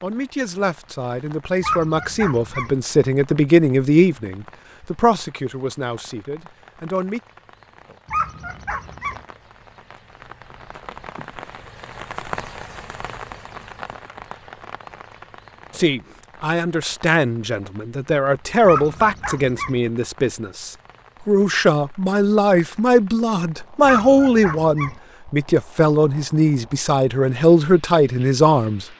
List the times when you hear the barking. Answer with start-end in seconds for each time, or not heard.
1.6-2.8, 8.1-9.2, 18.6-19.8, 23.9-25.0.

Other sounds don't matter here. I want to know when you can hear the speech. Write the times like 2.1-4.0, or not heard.
0.0-7.2, 15.7-28.9.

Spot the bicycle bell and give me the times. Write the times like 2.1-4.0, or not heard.
not heard.